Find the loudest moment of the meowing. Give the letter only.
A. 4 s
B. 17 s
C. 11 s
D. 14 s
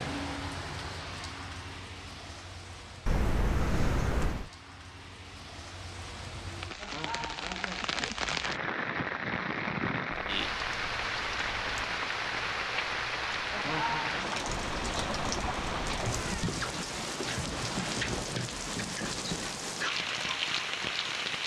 A.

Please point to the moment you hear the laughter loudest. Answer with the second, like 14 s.
14 s.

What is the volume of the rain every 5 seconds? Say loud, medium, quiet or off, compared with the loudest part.
medium, loud, loud, loud, loud.